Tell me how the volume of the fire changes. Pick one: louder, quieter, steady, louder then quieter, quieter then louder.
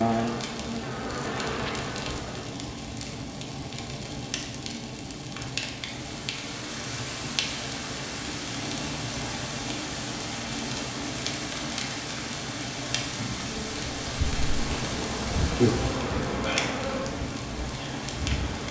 steady.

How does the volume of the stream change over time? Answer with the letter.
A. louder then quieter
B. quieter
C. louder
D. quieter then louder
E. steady
E.